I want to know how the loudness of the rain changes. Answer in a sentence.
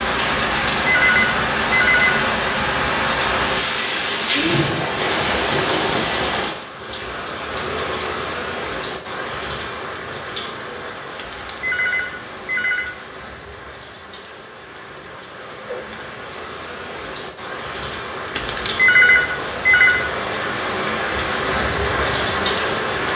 The volume of the rain goes down, then up.